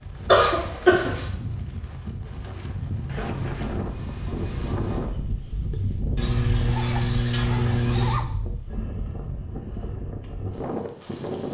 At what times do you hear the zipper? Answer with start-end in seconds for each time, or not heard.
3.0-3.8, 6.7-8.3.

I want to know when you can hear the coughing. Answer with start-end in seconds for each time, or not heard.
0.2-1.2, 6.2-8.2.